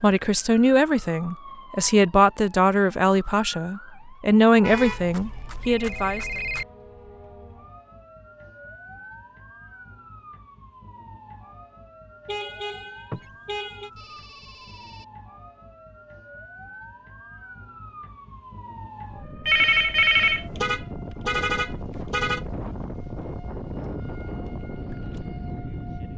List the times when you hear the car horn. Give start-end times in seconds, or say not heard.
4.6-5.1, 12.2-13.9, 20.6-22.4.